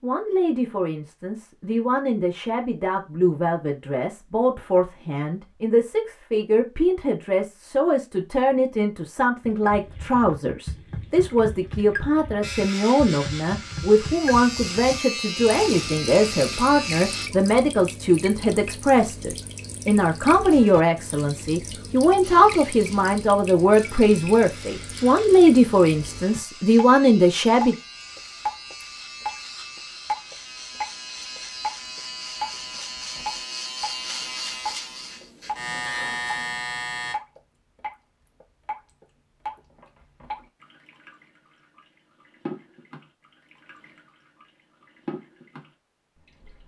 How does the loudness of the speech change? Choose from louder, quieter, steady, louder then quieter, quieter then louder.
louder.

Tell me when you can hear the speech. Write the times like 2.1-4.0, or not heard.
0.0-27.8.